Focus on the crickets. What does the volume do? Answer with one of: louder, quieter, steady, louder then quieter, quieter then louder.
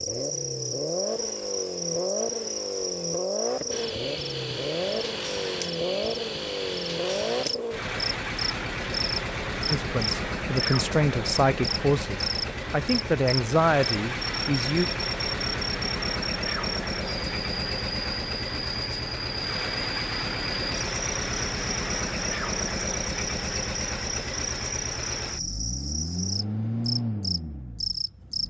steady.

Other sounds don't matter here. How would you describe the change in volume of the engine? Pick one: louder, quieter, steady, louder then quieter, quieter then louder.
steady.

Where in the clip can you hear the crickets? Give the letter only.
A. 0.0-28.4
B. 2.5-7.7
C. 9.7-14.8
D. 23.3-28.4
A.